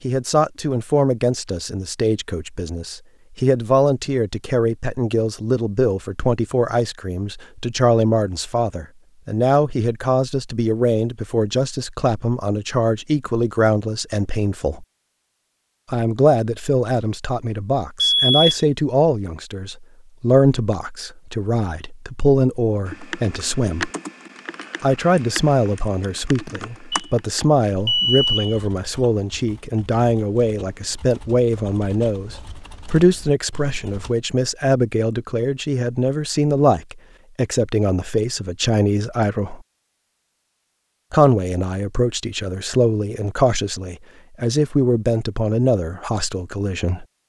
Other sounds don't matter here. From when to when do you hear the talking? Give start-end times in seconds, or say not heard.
0.0-14.8, 15.9-23.9, 24.8-39.6, 41.1-47.0.